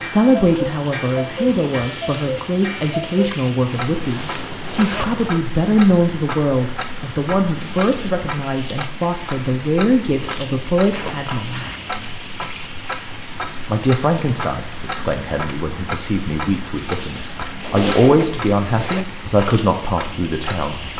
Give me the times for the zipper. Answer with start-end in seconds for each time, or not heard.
3.8-5.3, 10.9-11.9, 17.4-19.1.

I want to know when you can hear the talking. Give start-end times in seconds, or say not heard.
0.0-11.7, 13.7-20.8.